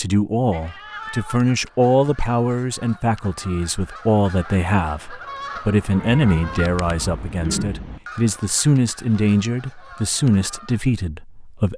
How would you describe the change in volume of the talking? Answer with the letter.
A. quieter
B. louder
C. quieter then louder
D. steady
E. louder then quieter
D.